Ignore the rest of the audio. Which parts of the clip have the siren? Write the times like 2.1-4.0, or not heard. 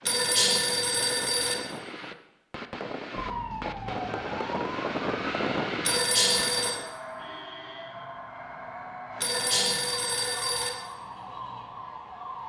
3.1-12.4.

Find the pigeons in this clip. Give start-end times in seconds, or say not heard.
not heard.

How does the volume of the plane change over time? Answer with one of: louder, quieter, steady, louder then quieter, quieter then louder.
louder.